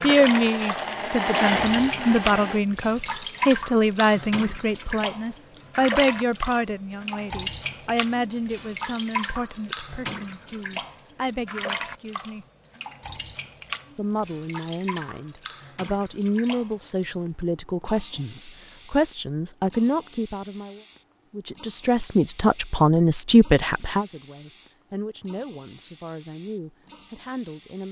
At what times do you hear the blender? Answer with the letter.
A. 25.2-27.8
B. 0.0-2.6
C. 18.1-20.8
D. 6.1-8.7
B.